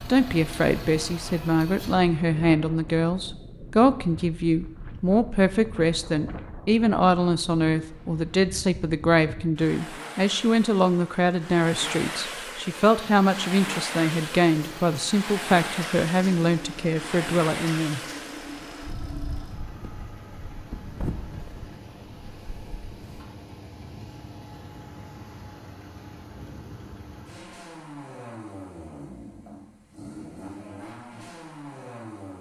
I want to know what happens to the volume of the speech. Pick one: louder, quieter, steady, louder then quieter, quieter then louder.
steady.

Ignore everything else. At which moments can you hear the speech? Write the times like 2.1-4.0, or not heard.
0.1-18.0.